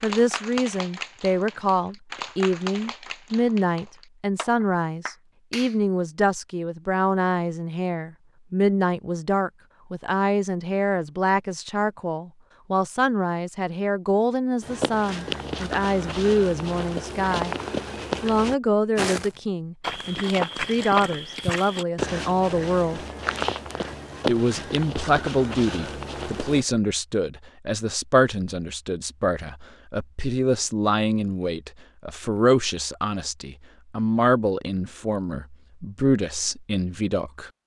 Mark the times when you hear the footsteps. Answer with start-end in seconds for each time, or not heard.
14.6-26.6.